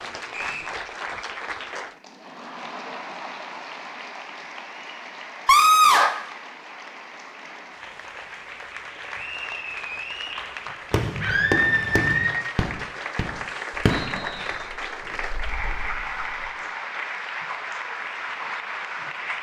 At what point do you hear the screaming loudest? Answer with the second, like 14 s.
6 s.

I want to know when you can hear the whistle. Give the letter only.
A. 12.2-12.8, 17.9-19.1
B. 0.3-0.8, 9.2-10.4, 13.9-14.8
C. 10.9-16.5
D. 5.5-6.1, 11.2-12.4
B.